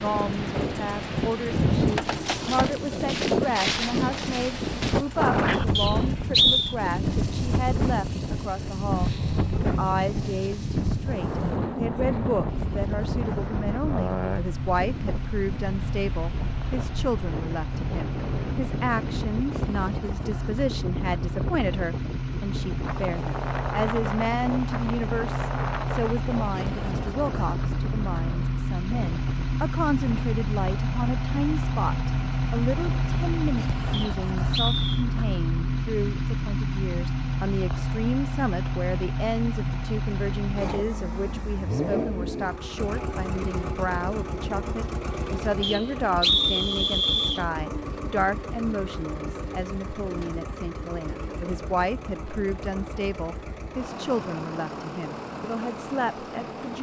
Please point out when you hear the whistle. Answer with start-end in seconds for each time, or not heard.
5.8-6.8, 33.9-35.0, 45.6-47.5.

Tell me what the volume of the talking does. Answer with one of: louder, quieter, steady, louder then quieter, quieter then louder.
steady.